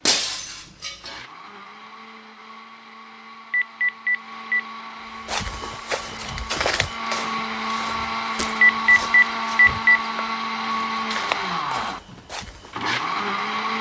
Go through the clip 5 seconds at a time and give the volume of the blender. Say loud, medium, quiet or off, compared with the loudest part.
quiet, loud, loud.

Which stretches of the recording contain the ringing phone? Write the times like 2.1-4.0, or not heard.
3.5-4.6, 8.7-10.0.